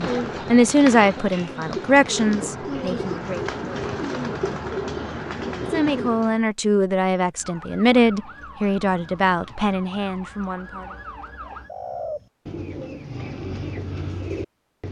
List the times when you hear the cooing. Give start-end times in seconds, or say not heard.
0.0-6.5, 11.4-14.8.